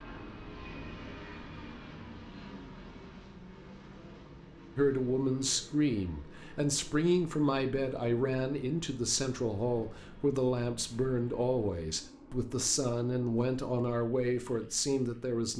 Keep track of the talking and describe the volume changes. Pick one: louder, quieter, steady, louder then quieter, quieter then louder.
steady.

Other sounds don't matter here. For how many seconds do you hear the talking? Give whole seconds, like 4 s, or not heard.
11 s.